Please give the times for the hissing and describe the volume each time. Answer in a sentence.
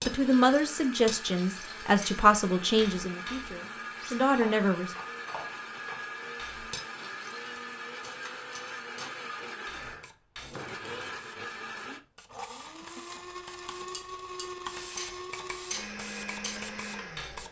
The hissing can be heard from 10.0 to 17.4 s, getting louder.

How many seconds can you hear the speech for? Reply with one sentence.
You can hear the speech for 5 seconds altogether.